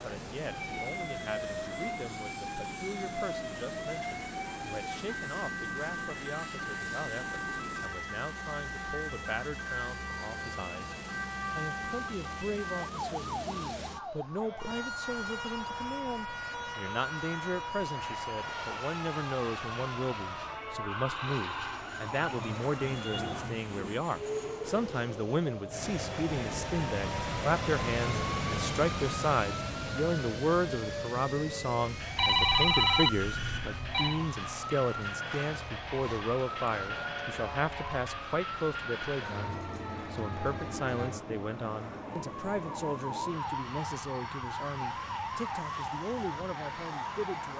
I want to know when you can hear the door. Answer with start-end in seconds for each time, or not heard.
not heard.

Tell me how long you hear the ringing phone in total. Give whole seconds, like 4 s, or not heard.
2 s.